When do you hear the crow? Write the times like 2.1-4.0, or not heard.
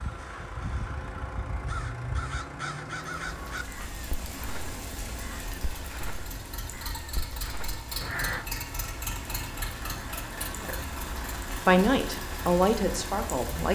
0.0-8.4.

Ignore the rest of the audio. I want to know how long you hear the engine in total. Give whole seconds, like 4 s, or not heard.
14 s.